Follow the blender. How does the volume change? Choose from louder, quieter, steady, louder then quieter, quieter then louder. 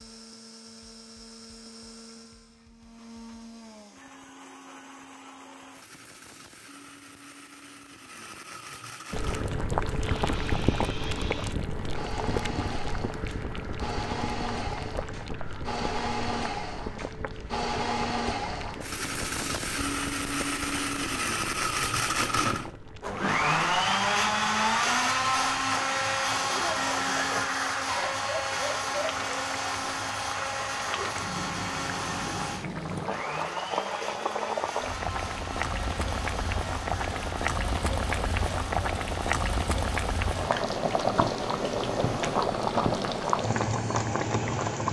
louder then quieter.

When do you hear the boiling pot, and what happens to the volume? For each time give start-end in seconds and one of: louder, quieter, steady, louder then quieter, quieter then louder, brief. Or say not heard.
9.1-44.8 quieter then louder.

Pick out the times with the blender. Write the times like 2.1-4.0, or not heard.
0.0-44.8.